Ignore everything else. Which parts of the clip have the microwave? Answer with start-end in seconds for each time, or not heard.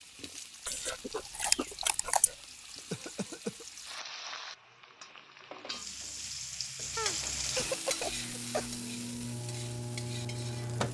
8.0-10.8.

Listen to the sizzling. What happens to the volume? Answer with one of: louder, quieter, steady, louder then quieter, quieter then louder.
louder then quieter.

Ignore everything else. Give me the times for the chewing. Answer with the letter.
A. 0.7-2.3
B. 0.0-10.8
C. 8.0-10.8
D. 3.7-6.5
A.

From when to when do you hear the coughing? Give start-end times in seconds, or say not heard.
2.2-3.6, 7.0-8.7.